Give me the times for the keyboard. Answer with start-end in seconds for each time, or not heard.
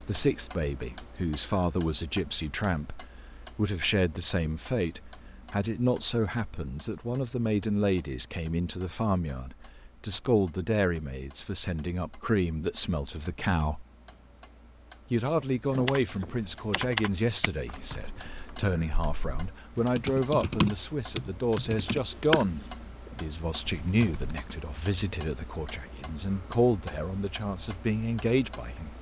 15.8-22.4, 23.1-24.4.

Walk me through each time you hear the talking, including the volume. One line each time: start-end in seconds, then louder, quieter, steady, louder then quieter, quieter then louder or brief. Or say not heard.
0.0-13.8 steady
15.1-28.9 steady.